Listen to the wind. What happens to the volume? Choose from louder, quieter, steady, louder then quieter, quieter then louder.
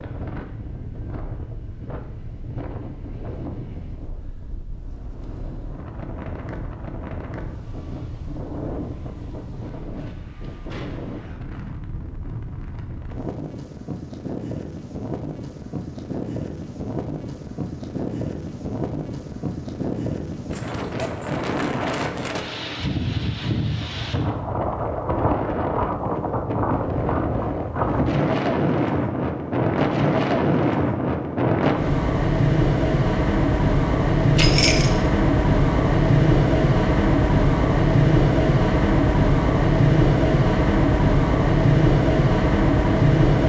louder.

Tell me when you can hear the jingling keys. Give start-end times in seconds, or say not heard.
34.4-35.0.